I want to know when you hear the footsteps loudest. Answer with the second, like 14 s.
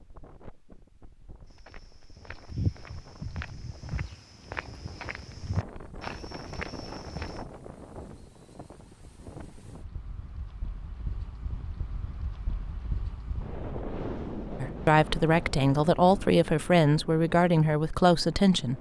3 s.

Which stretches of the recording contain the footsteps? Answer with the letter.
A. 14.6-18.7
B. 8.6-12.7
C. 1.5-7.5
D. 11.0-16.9
C.